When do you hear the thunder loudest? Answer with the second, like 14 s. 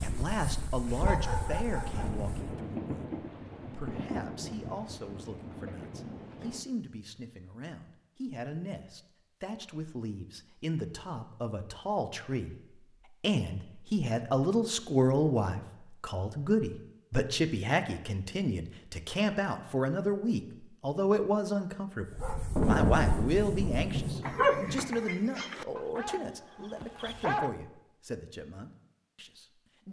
23 s.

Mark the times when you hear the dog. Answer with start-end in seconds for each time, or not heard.
0.0-2.5, 22.0-27.6.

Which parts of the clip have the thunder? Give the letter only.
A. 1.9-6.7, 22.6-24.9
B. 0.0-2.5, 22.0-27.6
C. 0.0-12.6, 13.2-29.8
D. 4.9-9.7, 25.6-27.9
A.